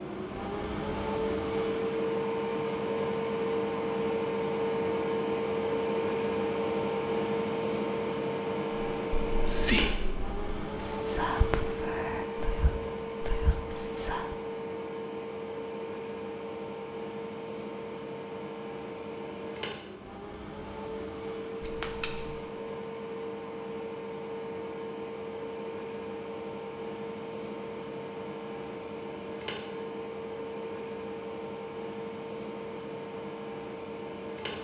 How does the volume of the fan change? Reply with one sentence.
The volume of the fan goes down.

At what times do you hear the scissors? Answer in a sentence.
You can hear the scissors from 21.6 to 22.4 s.